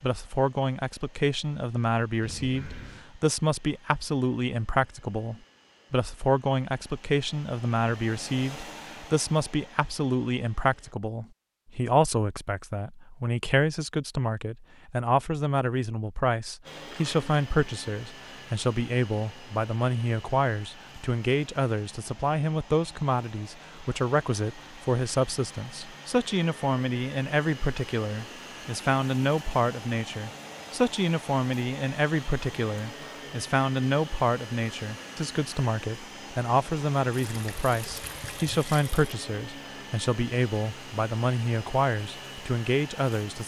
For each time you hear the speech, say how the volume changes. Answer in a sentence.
You can hear the speech from 0.0 to 43.4 s, at a steady volume.